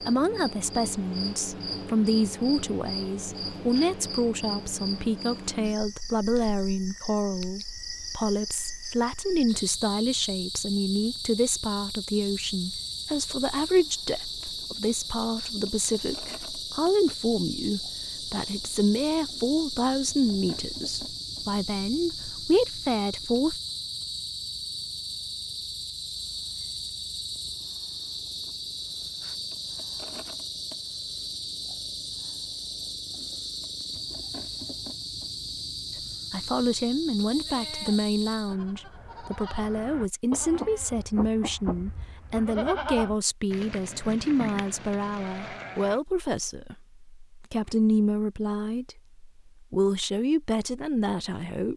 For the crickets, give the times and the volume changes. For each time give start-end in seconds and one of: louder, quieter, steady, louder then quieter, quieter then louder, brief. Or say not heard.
0.0-38.5 steady.